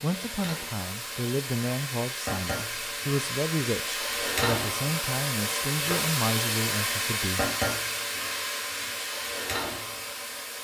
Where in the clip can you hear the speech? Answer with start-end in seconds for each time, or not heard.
0.0-7.5.